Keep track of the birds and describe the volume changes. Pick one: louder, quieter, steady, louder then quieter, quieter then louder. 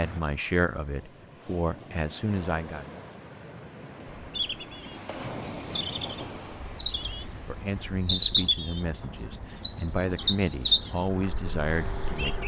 louder.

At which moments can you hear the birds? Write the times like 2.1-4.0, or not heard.
4.2-12.4.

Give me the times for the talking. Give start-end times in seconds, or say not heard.
0.0-2.9, 7.5-12.4.